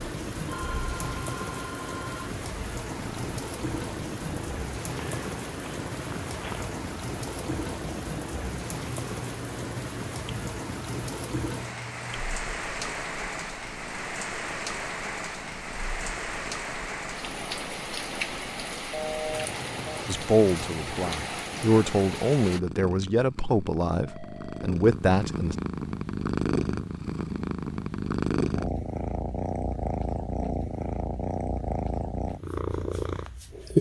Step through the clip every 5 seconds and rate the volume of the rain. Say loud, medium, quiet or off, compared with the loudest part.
loud, loud, loud, loud, loud, off, off.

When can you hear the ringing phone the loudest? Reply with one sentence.
The loudest moment of the ringing phone is at 19 seconds.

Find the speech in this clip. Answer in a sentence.
You can hear the speech from 20.1 to 25.6 s.